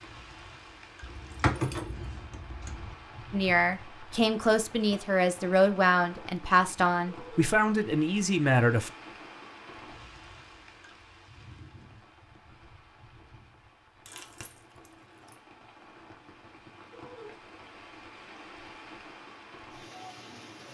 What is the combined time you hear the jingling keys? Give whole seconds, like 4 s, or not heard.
3 s.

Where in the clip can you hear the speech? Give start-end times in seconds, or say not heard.
3.3-8.9.